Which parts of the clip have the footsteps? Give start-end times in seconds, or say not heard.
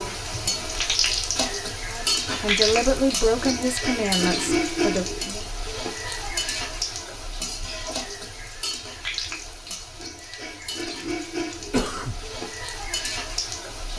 not heard.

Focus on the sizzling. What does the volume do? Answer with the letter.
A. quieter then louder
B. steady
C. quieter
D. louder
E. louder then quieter
C.